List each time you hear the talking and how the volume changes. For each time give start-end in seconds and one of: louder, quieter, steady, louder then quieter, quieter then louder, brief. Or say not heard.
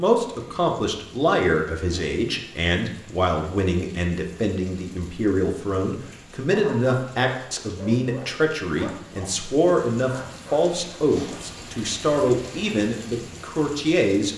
0.0-14.3 steady.